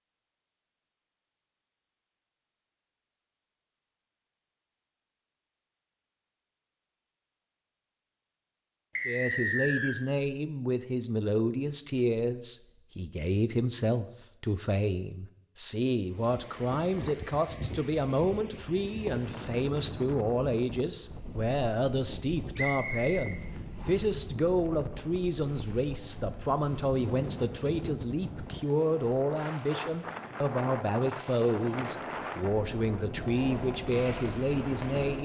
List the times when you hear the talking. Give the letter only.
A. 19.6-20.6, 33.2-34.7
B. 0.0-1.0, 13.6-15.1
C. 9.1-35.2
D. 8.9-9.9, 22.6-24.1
C.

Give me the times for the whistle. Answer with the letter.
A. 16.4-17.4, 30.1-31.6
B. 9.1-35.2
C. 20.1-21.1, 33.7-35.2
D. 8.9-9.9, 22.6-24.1
D.